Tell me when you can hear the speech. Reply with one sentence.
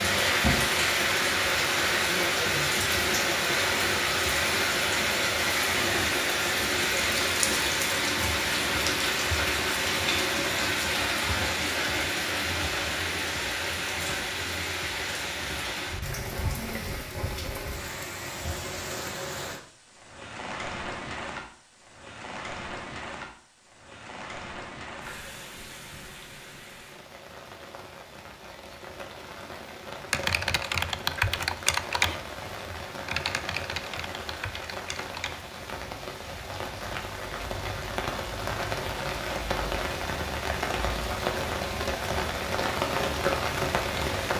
You can't hear the speech here.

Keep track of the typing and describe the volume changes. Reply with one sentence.
The loudness of the typing goes down.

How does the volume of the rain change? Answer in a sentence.
The loudness of the rain goes down, then up.